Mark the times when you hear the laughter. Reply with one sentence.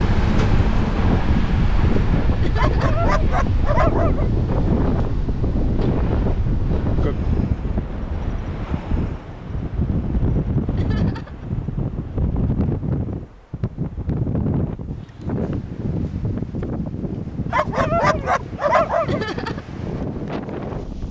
The laughter can be heard from 2.4 to 3.0 s, from 10.8 to 11.4 s and from 19.1 to 19.6 s.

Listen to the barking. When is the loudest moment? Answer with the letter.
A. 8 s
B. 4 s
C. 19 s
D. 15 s
C.